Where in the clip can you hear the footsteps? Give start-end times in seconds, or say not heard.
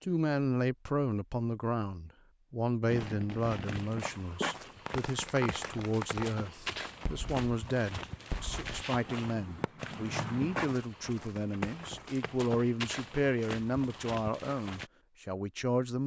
3.6-14.9.